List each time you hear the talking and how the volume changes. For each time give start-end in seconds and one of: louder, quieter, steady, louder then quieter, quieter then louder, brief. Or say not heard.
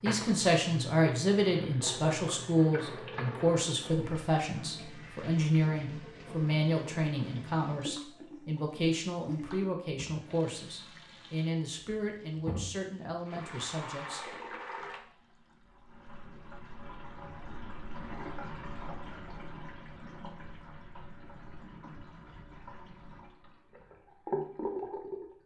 0.0-14.3 quieter.